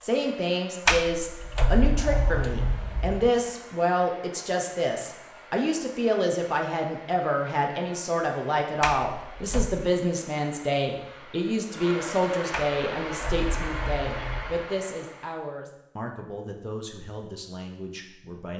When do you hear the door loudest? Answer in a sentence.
The loudest moment of the door is at 1 second.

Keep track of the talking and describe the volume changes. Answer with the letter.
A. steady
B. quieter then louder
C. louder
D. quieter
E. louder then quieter
D.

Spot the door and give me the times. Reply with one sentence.
The door can be heard from 0.8 to 3.3 s, from 8.8 to 9.7 s and from 12.5 to 14.7 s.